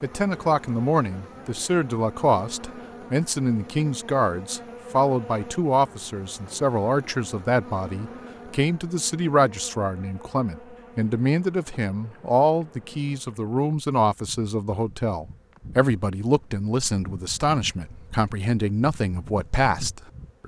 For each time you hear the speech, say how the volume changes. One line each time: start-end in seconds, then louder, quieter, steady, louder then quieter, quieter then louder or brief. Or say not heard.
0.0-20.4 steady.